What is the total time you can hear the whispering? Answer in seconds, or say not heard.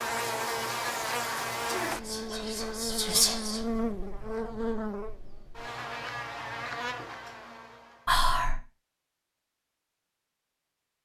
2 s.